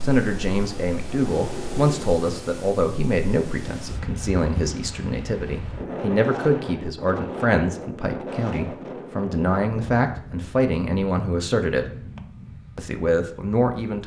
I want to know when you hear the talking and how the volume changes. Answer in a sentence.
The talking can be heard from 0.0 to 11.8 s, at a steady volume; and briefly from 12.8 to 14.0 s.